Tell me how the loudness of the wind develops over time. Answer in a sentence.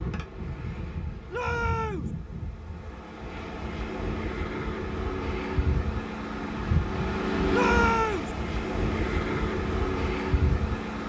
The volume of the wind goes up.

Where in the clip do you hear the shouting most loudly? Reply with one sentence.
The volume of the shouting peaks at 8 seconds.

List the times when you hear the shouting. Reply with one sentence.
The shouting can be heard from 1.3 to 2.1 s and from 7.5 to 8.3 s.